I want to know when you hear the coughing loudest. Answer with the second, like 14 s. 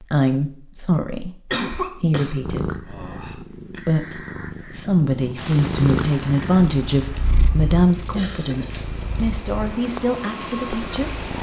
2 s.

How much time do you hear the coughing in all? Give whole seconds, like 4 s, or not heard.
3 s.